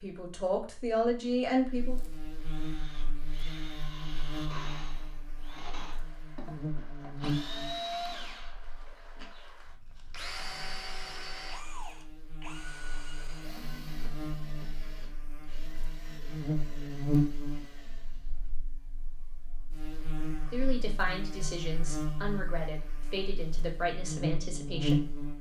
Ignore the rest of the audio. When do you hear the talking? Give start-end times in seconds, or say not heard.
0.0-2.0, 20.4-25.1.